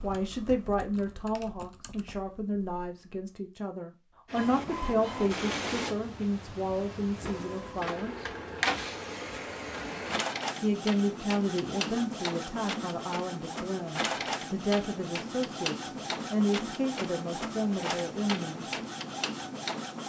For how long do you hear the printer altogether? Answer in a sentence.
You can hear the printer for 16 seconds altogether.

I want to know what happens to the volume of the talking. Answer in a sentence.
The loudness of the talking stays about the same.